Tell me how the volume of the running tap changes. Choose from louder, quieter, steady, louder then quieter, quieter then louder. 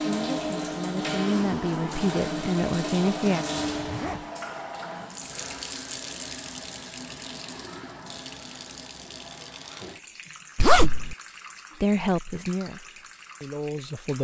quieter.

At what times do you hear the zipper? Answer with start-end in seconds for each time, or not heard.
3.7-4.2, 10.6-11.2.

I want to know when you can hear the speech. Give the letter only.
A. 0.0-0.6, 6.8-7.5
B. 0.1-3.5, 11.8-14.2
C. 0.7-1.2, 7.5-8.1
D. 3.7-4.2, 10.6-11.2
B.